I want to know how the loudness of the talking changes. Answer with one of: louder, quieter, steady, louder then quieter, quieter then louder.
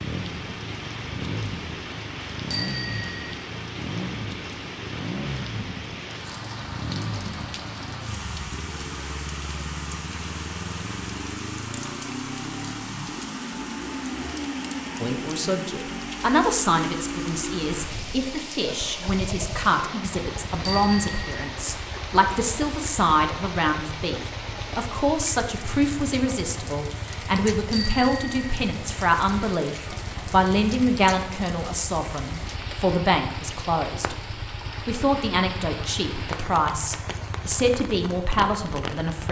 steady.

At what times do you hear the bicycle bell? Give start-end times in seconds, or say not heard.
2.5-3.4, 20.6-21.4, 27.7-28.6.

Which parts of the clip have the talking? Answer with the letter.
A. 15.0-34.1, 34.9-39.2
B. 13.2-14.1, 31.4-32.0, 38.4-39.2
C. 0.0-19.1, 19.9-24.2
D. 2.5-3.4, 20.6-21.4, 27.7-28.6
A.